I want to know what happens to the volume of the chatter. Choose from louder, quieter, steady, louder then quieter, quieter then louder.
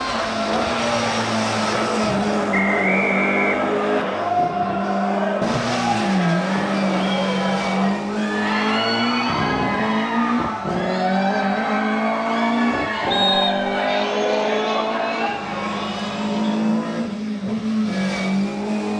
steady.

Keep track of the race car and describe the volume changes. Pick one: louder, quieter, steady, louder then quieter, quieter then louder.
steady.